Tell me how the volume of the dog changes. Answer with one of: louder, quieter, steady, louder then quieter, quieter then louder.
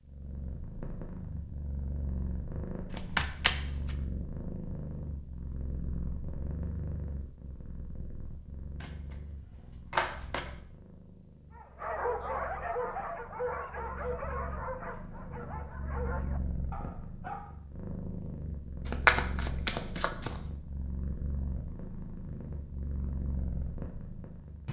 quieter.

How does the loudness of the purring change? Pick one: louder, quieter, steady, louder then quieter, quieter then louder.
quieter then louder.